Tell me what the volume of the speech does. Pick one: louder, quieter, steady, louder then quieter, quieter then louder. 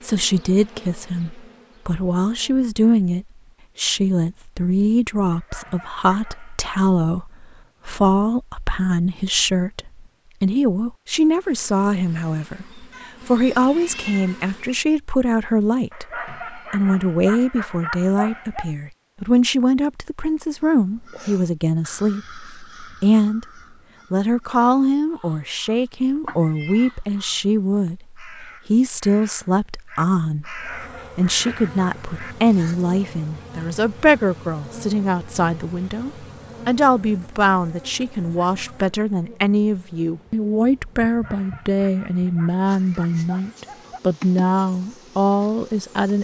steady.